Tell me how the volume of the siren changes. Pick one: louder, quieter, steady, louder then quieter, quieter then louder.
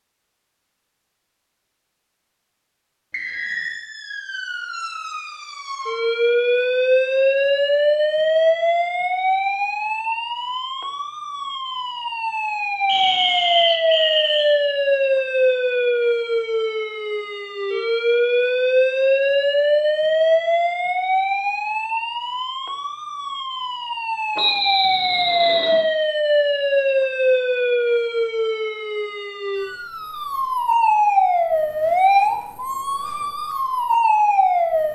steady.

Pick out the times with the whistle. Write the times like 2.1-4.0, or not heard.
3.1-3.8, 12.8-14.6, 24.4-25.9.